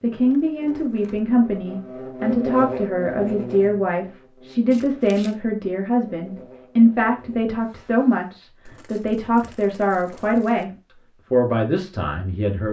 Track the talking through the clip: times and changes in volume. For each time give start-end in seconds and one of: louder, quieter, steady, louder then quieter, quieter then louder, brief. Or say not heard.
0.0-12.6 steady.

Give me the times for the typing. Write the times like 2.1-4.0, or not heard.
not heard.